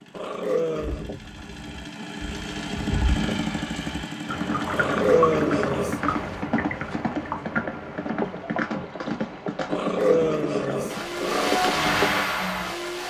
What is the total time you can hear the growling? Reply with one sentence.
You can hear the growling for 4 seconds altogether.